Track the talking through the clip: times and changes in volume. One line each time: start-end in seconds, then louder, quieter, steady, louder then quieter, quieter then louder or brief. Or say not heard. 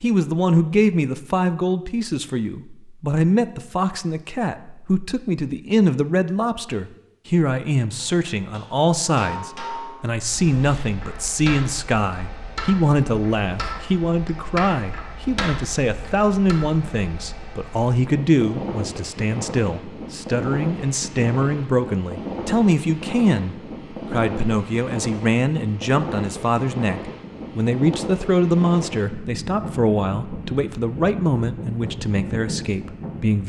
0.0-33.4 steady.